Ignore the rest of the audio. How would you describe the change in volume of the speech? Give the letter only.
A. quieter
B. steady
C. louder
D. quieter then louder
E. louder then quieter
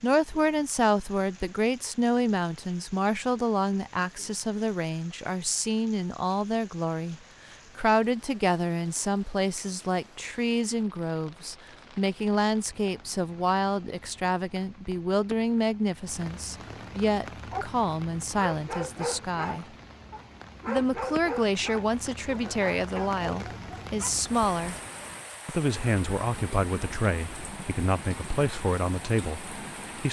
B.